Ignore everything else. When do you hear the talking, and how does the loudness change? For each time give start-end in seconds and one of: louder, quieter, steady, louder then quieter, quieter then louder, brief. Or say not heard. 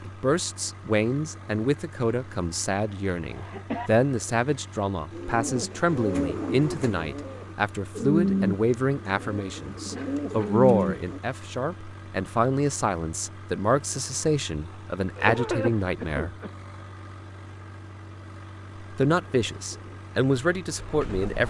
0.1-16.4 steady
18.8-21.4 brief.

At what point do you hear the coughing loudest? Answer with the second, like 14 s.
16 s.